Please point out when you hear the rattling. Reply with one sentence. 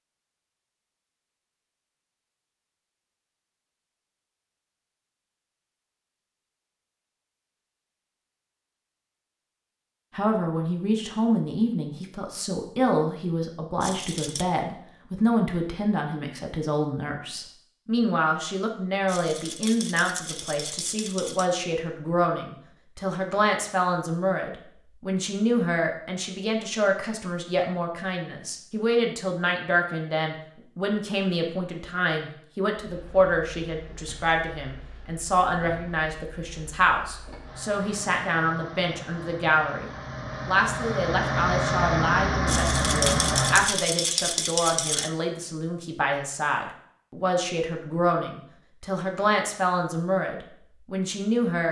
You can hear the rattling from 13.8 to 14.4 s, from 19.1 to 21.4 s and from 42.5 to 45.1 s.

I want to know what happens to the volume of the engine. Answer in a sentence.
The volume of the engine goes up.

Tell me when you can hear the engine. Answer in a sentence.
You can hear the engine from 32.8 to 43.7 s.